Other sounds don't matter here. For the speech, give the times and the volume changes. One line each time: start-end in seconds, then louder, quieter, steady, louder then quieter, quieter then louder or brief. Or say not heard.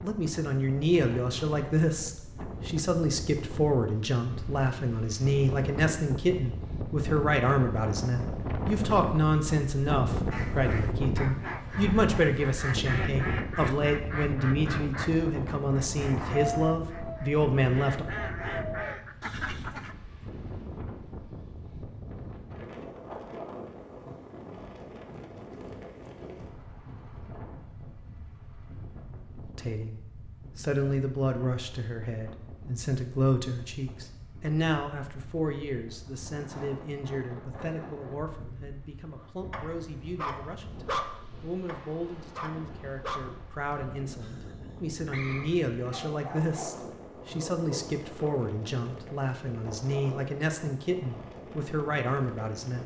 0.0-18.1 steady
29.6-52.8 quieter then louder.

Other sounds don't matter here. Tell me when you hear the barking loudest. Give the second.
41 s.